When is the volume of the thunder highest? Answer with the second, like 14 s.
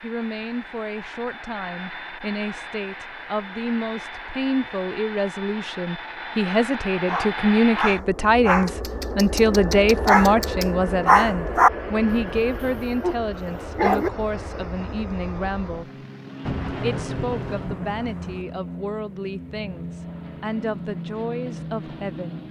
17 s.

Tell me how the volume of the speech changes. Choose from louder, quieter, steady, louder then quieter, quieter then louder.
louder then quieter.